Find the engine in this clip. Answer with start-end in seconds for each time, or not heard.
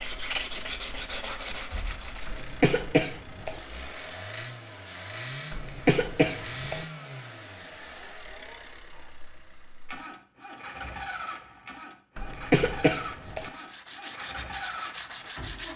0.0-15.7.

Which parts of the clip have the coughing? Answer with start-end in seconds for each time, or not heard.
2.2-3.6, 5.5-6.8, 12.2-13.5.